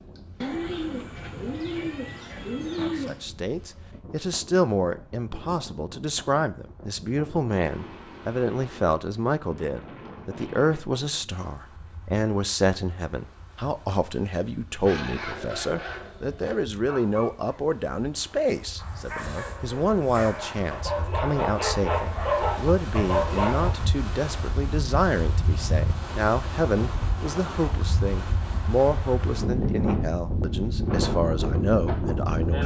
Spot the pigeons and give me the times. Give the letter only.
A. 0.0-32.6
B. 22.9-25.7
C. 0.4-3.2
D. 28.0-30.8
C.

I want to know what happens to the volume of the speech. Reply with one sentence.
The loudness of the speech stays about the same.